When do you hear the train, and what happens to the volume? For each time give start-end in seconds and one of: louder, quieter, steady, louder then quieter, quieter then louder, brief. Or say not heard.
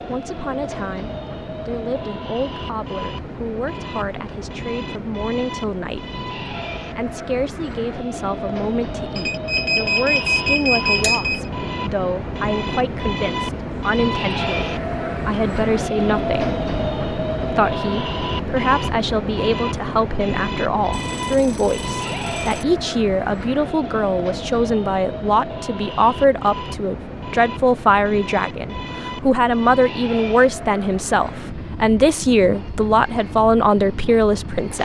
0.0-34.8 louder then quieter.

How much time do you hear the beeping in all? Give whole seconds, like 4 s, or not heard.
4 s.